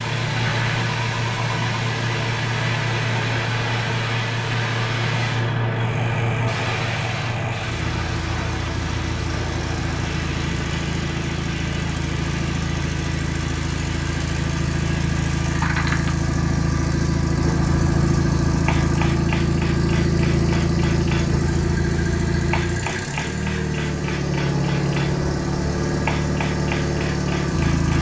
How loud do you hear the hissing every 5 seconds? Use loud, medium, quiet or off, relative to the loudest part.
loud, loud, medium, medium, medium, medium.